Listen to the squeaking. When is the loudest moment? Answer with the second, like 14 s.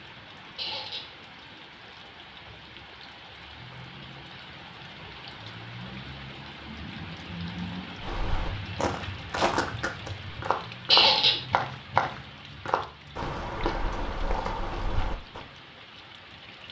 11 s.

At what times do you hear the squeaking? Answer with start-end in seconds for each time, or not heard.
0.6-1.1, 10.8-11.4.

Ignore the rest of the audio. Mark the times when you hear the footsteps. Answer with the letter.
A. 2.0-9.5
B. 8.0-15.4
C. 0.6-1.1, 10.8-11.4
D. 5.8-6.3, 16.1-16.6
B.